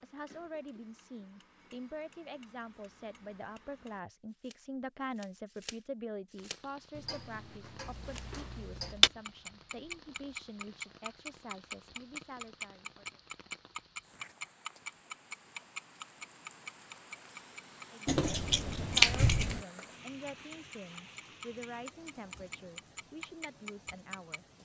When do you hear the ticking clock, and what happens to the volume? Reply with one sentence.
You can hear the ticking clock from 0.0 to 24.5 s, getting louder then quieter.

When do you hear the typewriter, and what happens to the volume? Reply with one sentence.
The typewriter can't be heard in this clip.